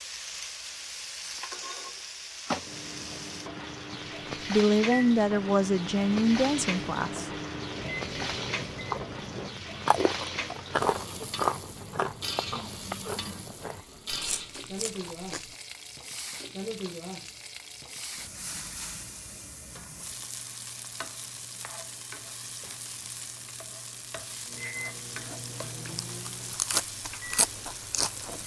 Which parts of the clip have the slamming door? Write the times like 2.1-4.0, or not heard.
not heard.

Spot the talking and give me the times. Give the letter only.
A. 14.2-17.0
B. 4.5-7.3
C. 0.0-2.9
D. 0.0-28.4
B.